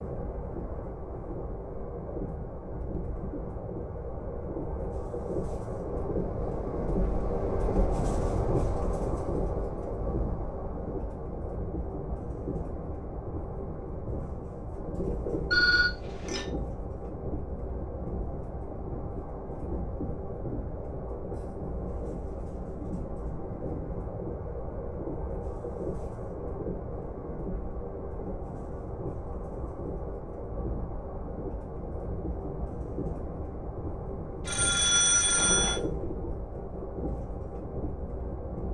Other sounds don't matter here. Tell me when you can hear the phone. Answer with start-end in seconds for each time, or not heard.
15.5-16.5, 34.5-35.8.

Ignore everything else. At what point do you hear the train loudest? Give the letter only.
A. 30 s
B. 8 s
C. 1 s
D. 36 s
B.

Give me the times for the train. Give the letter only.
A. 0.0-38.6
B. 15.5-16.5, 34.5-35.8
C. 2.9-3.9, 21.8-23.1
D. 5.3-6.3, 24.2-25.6
A.